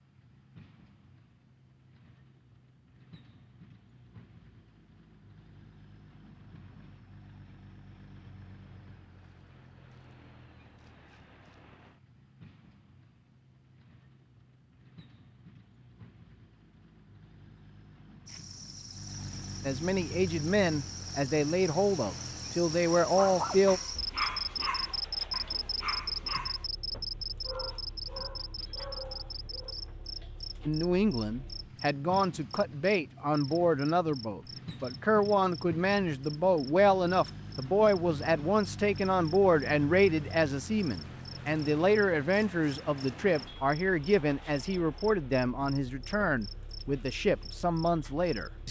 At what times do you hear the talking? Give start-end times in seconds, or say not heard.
19.6-23.8, 30.6-48.6.